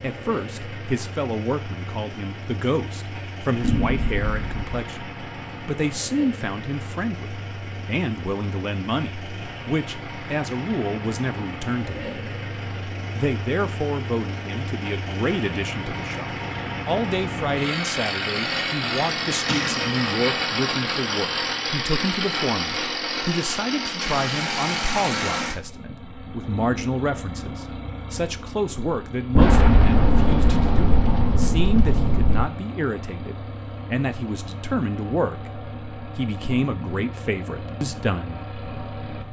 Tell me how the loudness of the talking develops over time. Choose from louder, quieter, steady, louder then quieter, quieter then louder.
steady.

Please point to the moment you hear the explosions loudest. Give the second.
30 s.